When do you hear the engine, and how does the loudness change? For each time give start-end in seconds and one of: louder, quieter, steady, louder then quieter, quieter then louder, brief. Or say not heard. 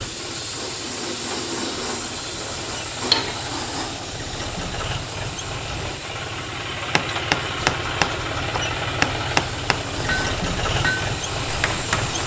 0.0-12.2 louder.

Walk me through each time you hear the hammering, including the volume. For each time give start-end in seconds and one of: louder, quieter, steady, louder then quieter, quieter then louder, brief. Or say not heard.
7.0-12.2 quieter.